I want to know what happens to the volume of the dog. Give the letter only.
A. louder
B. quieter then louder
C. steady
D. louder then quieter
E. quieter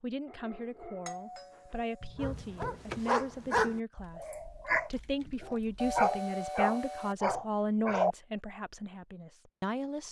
A.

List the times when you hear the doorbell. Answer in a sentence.
The doorbell can be heard from 1.1 to 2.1 s and from 5.8 to 7.2 s.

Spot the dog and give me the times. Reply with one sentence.
The dog can be heard from 0.2 to 8.2 s.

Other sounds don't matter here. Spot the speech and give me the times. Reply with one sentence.
You can hear the speech from 0.0 to 10.0 s.